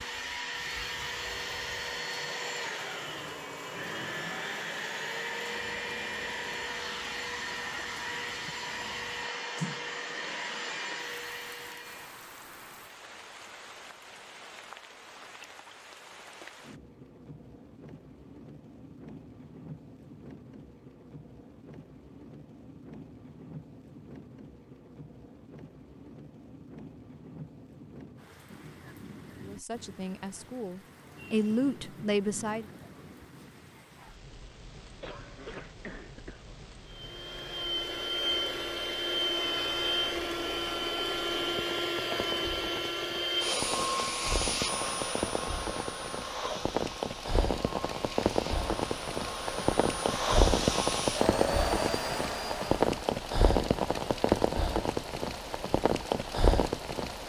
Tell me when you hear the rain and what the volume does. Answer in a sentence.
You can hear the rain from 0.0 to 57.2 s, getting louder.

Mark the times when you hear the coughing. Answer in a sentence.
The coughing can be heard from 35.0 to 36.6 s.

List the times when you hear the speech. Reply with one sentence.
The speech can be heard from 29.4 to 32.7 s.